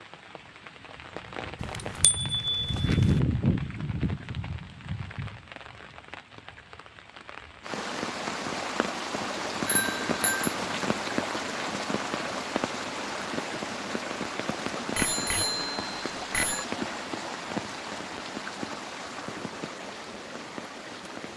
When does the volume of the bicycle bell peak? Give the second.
3 s.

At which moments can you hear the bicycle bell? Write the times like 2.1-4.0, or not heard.
1.6-3.2, 9.7-10.6, 14.9-16.6.